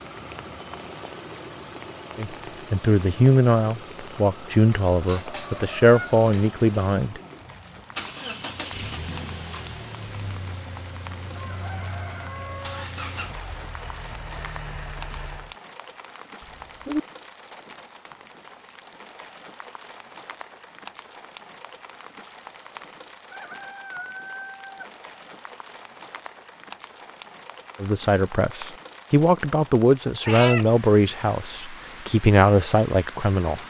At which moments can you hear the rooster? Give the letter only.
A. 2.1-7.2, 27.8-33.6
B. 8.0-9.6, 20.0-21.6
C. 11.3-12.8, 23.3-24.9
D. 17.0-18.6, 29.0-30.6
C.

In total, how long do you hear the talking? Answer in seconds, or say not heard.
11 s.